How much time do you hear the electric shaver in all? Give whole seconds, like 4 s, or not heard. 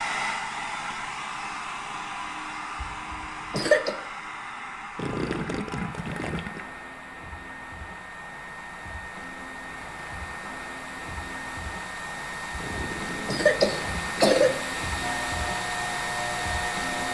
2 s.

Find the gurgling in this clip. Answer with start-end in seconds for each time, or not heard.
5.0-6.7, 12.6-14.7.